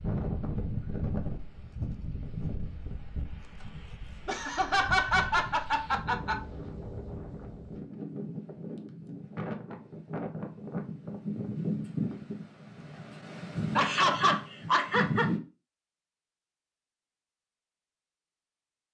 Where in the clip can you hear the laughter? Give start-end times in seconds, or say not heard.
4.2-6.3, 13.8-15.3.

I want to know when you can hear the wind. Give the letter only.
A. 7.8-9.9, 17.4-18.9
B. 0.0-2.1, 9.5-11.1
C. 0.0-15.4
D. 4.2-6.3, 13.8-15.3
C.